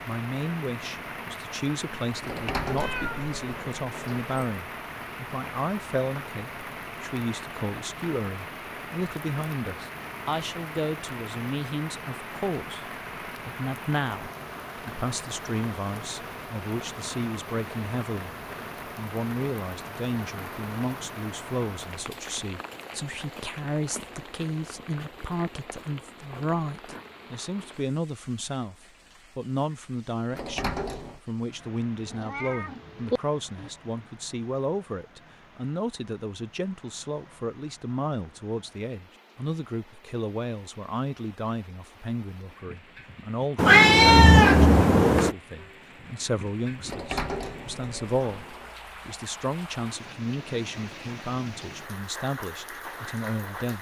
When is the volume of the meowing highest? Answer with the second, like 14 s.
44 s.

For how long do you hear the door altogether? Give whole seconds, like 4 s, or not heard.
5 s.